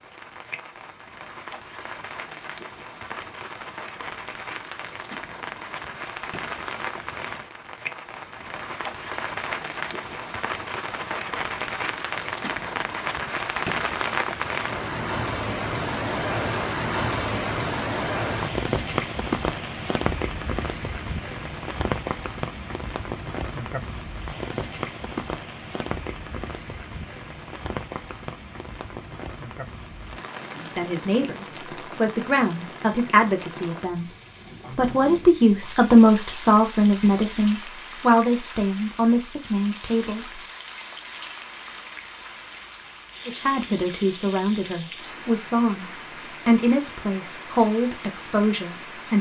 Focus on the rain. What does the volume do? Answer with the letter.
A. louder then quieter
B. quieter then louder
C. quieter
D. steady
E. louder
A.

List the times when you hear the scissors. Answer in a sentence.
The scissors can't be heard in this clip.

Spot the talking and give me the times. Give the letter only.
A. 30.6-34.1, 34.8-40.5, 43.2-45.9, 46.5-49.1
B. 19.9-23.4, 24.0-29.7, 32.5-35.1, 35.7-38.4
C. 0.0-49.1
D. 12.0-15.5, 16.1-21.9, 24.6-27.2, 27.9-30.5
A.